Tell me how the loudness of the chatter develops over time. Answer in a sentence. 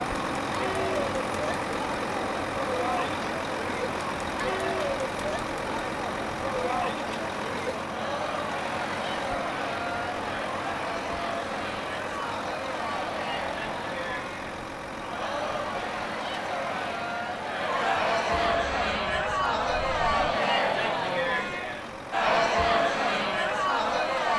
The loudness of the chatter goes up.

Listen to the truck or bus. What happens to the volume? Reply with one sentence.
The loudness of the truck or bus goes down.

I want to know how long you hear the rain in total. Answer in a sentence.
The rain can't be heard in this clip.